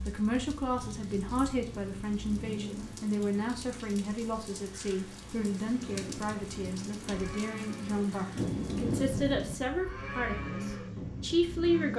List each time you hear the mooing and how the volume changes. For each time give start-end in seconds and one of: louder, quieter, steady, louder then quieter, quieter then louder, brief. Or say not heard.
5.8-11.8 louder then quieter.